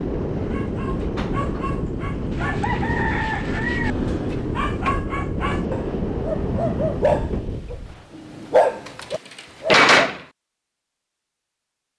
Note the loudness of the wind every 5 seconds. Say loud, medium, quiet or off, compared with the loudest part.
loud, loud, off.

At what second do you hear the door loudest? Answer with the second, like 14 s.
10 s.